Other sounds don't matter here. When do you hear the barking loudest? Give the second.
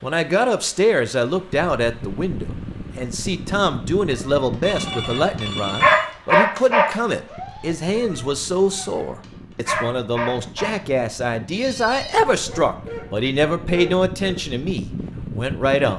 6 s.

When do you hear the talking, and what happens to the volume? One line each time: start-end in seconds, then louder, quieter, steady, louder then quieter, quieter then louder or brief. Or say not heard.
0.0-15.9 steady.